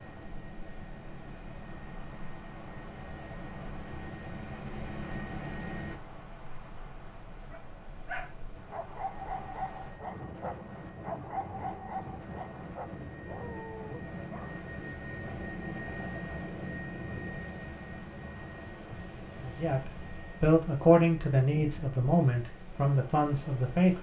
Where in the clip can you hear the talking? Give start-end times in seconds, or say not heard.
19.4-23.9.